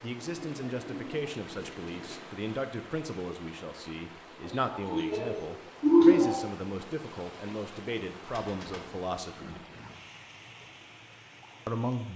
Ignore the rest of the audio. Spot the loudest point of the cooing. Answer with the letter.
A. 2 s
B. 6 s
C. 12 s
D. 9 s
B.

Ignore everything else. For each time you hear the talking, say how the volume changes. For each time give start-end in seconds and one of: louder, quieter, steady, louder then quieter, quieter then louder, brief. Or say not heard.
0.0-9.6 steady
11.7-12.1 brief.